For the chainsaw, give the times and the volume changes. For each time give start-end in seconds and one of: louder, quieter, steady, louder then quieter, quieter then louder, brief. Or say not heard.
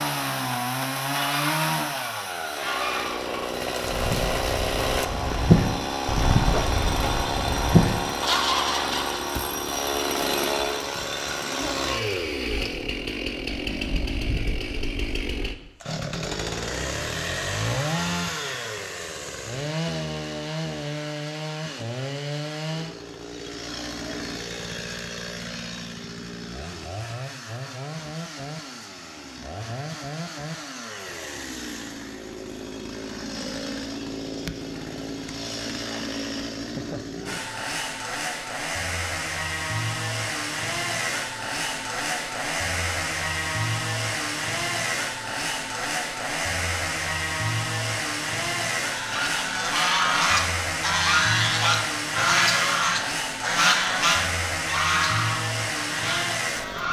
0.0-56.8 quieter then louder.